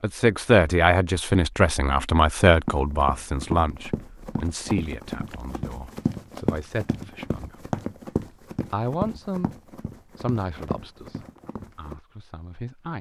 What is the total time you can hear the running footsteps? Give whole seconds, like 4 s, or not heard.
9 s.